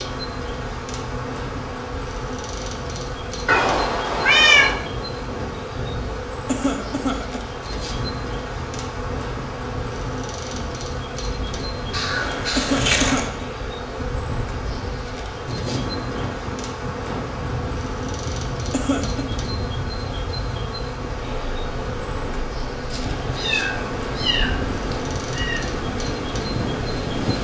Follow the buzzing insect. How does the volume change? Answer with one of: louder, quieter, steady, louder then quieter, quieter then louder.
steady.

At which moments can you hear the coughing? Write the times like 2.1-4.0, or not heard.
6.5-7.5, 12.6-13.4, 18.7-19.2.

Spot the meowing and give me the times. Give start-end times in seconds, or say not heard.
3.5-4.8, 11.9-13.3, 22.9-25.6.